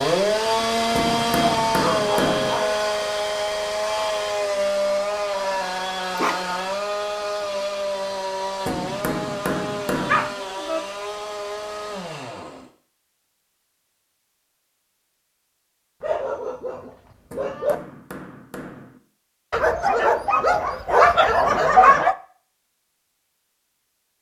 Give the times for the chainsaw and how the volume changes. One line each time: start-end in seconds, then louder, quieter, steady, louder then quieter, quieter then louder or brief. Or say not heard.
0.0-12.7 quieter.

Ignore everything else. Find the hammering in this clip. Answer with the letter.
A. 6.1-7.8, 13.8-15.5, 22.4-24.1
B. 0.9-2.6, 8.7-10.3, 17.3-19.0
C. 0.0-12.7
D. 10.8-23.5
B.